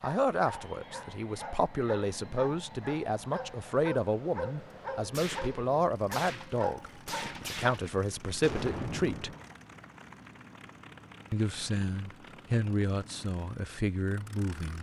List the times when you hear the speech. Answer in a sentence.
You can hear the speech from 0.0 to 9.3 s and from 11.3 to 14.7 s.